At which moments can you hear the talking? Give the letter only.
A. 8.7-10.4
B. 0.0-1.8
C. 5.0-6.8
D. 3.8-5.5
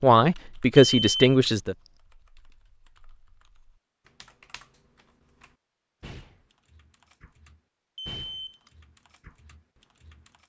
B.